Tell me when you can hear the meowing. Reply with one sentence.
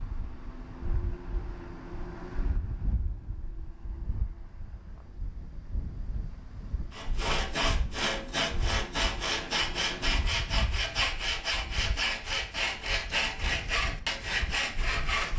You can't hear the meowing here.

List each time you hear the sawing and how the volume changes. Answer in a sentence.
The sawing can be heard from 6.9 to 15.3 s, at a steady volume.